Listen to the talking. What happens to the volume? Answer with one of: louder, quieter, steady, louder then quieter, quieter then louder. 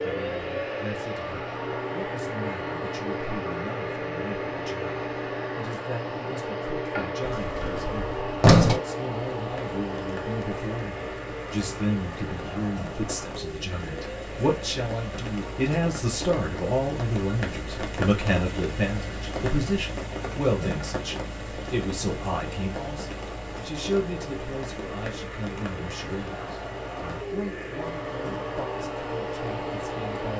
louder then quieter.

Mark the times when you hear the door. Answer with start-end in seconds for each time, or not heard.
7.2-8.8.